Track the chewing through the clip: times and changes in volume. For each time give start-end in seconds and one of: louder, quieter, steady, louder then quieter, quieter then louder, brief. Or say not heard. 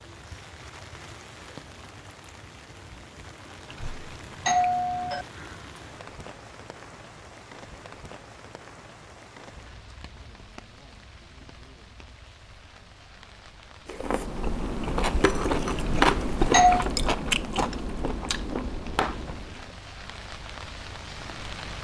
13.8-19.8 louder then quieter.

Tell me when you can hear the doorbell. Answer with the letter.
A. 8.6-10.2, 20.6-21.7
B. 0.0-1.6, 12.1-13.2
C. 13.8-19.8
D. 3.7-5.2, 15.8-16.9
D.